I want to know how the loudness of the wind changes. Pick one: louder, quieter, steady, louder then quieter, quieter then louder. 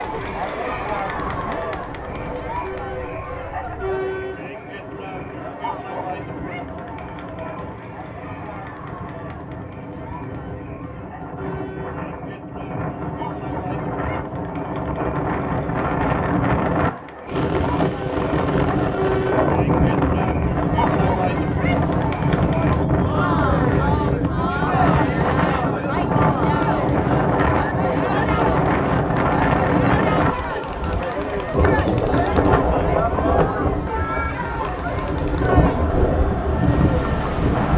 louder.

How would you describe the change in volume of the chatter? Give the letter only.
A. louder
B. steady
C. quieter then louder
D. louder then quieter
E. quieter
C.